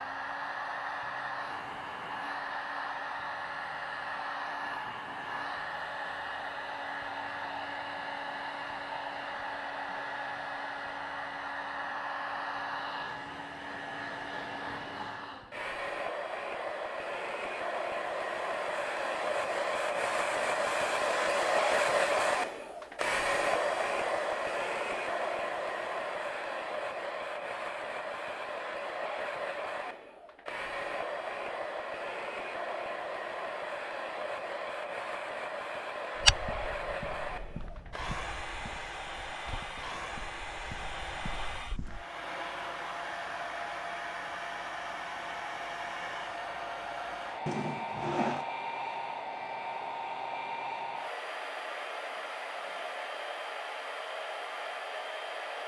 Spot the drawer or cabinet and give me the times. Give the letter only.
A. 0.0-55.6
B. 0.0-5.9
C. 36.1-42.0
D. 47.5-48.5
D.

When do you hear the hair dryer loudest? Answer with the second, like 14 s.
22 s.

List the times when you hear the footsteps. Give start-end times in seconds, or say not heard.
36.1-42.0.